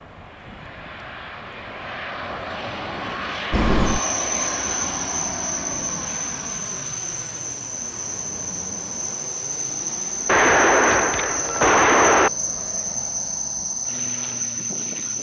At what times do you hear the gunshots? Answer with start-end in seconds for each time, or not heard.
10.2-12.3.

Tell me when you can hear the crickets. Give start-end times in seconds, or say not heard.
3.5-15.1.